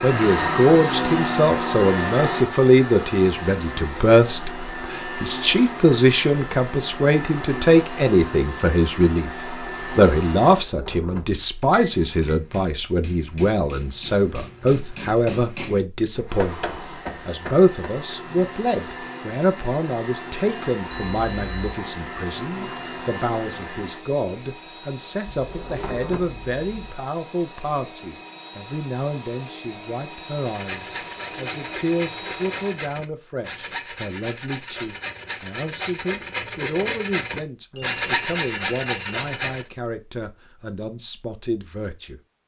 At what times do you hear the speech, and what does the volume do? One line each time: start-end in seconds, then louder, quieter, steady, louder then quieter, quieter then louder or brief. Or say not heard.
0.0-42.2 quieter.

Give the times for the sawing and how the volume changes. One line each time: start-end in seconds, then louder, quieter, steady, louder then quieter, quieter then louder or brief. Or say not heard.
30.4-39.7 louder.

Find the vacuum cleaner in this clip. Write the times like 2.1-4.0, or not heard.
0.0-10.7, 16.2-32.8.